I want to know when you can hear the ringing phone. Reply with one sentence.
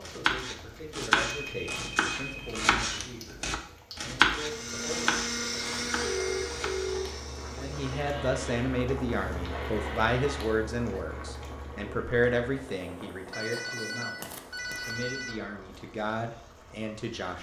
You can hear the ringing phone from 1.4 to 2.6 s, from 6.0 to 7.1 s and from 13.3 to 15.3 s.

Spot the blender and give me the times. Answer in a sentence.
You can hear the blender from 4.3 to 10.6 s.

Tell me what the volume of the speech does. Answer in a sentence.
The volume of the speech goes up, then down.